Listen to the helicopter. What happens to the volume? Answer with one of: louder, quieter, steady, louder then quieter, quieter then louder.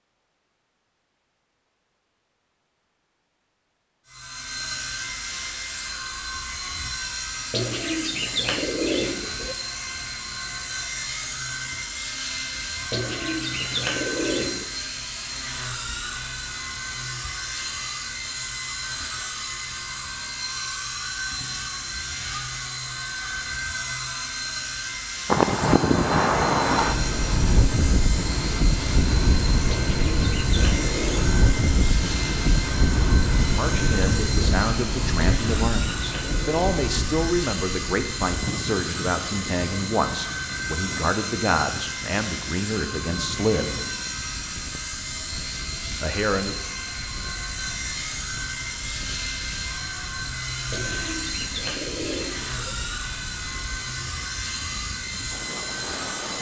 steady.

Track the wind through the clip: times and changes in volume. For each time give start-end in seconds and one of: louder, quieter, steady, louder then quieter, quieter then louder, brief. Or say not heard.
25.2-56.3 quieter.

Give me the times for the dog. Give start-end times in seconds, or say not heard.
not heard.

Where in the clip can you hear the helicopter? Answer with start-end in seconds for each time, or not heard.
4.0-56.3.